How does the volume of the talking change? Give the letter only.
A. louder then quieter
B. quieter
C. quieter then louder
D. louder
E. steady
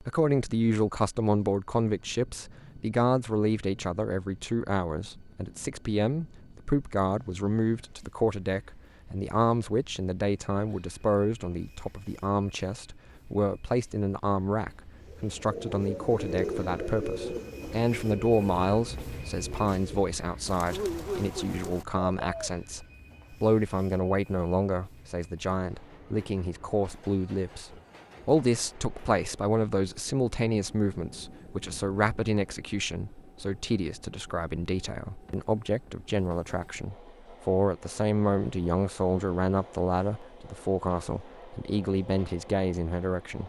E.